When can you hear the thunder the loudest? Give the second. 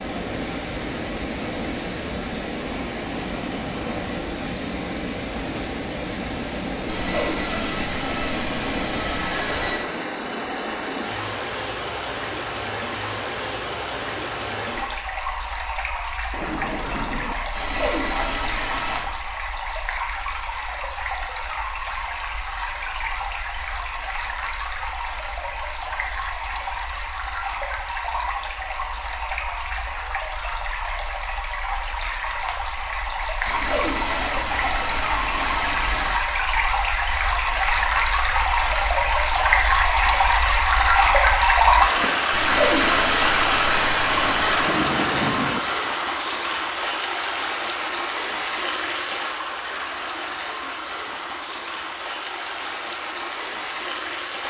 45 s.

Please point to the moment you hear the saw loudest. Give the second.
43 s.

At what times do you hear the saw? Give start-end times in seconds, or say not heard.
6.8-9.8, 17.6-19.1, 33.5-36.2, 42.3-44.7.